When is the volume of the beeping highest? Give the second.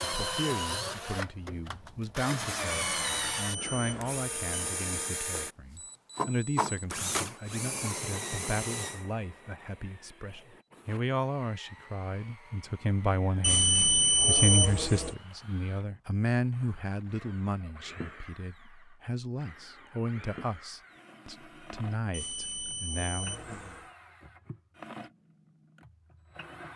14 s.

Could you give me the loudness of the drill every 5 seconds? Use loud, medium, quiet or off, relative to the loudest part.
loud, loud, quiet, quiet, quiet, quiet.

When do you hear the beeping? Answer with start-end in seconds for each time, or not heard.
2.7-4.6, 13.4-15.2, 22.1-23.9.